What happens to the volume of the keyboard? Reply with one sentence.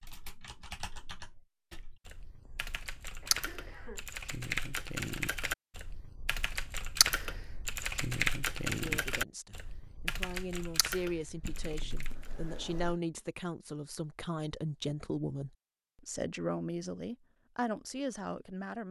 The loudness of the keyboard goes up, then down.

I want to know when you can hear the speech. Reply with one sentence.
The speech can be heard from 8.8 to 18.8 s.